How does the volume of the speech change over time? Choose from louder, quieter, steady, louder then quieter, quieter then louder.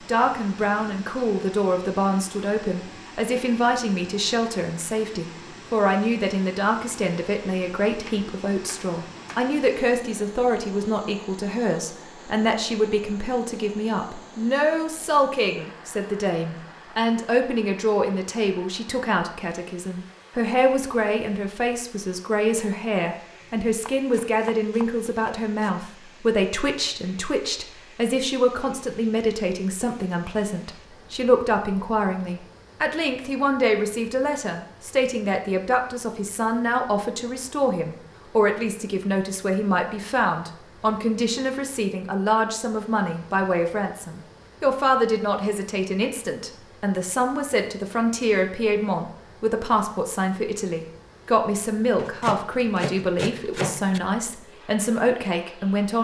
steady.